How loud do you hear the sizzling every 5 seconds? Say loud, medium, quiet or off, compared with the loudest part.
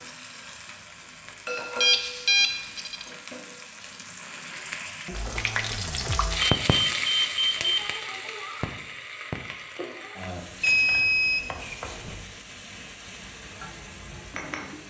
medium, loud, medium.